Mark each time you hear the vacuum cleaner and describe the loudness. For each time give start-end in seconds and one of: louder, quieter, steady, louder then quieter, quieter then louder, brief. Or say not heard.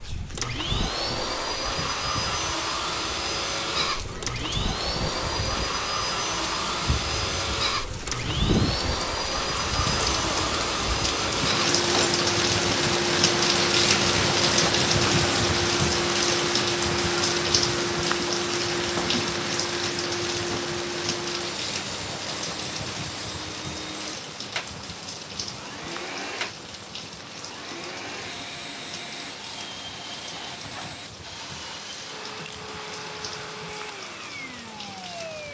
0.0-35.4 quieter.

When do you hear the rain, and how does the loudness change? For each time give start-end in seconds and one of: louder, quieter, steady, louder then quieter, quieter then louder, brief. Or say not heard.
0.0-35.4 louder then quieter.